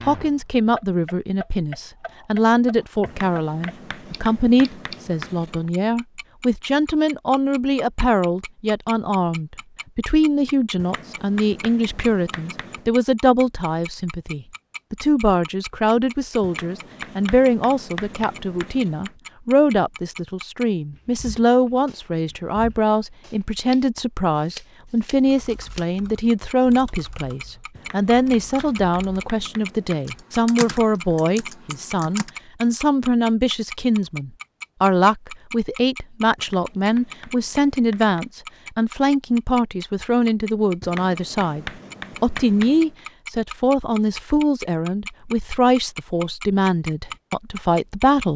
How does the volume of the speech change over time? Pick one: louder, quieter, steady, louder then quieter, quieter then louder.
steady.